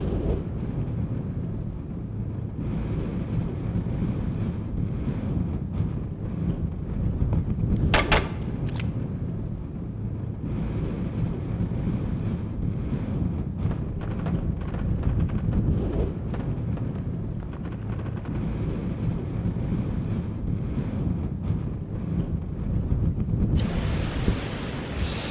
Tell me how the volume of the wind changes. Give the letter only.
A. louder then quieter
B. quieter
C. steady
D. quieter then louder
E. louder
C.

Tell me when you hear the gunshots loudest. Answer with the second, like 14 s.
8 s.